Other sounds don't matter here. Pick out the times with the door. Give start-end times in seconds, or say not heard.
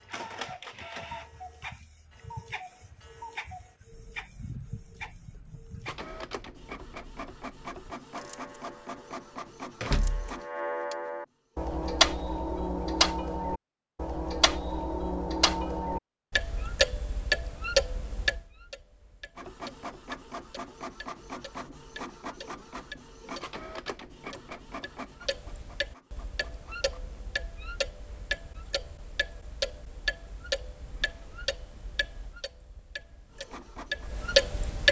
9.8-10.4.